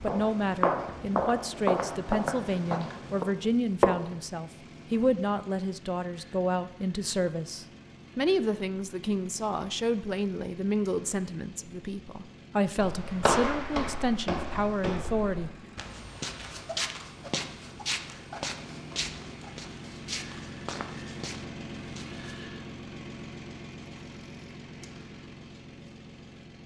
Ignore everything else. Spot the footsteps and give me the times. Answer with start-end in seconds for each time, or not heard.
0.0-4.2, 12.8-22.4.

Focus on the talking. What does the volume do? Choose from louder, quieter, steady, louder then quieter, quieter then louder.
steady.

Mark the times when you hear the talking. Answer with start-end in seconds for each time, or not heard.
0.0-15.5.